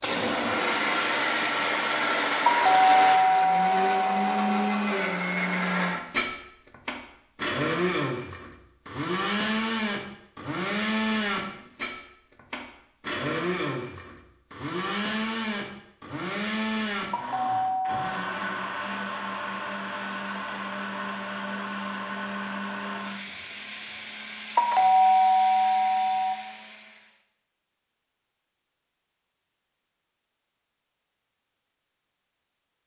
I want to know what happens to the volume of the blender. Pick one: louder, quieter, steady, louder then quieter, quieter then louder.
quieter.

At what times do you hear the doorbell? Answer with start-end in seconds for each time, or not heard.
2.5-4.8, 17.1-18.1, 24.6-26.4.